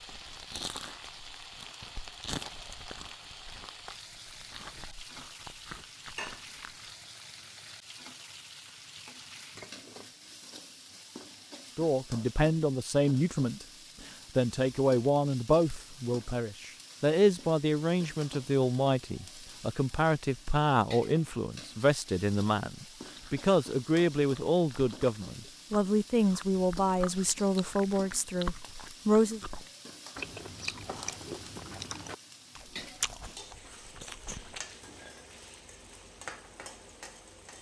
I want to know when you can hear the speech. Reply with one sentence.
The speech can be heard from 11.8 to 13.7 s and from 14.3 to 29.4 s.